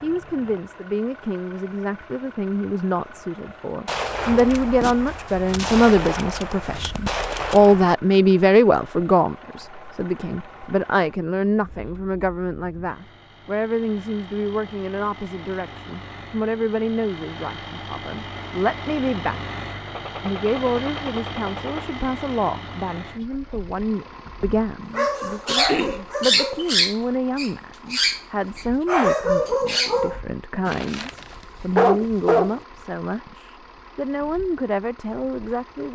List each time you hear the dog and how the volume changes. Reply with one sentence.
You can hear the dog from 24.9 to 32.5 s, at a steady volume.